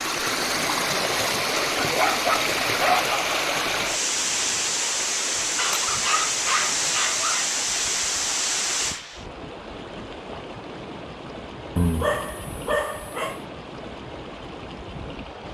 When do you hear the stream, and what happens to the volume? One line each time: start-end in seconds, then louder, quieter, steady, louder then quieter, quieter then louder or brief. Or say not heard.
0.0-15.4 quieter.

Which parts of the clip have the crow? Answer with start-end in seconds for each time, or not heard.
not heard.